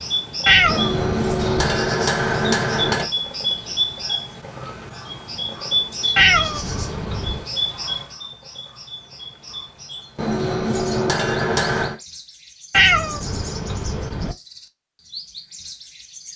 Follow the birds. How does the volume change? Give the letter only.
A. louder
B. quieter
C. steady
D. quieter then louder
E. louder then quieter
B.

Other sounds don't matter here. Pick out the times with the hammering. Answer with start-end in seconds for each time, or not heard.
0.7-3.1, 10.2-11.9.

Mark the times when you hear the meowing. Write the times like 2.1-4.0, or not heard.
0.5-1.9, 6.2-7.5, 12.7-14.3.